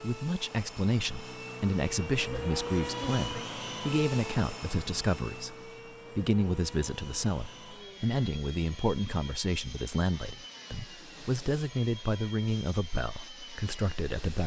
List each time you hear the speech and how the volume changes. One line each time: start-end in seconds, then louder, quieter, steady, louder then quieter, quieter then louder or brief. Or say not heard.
0.0-14.4 steady.